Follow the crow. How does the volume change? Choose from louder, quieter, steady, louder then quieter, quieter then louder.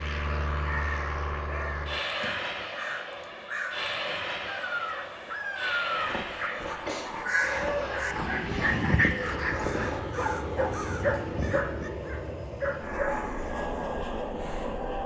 louder then quieter.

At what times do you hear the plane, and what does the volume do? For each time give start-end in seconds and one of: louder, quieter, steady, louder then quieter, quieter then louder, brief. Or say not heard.
0.0-15.0 quieter then louder.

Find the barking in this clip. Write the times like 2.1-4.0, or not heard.
5.9-13.2.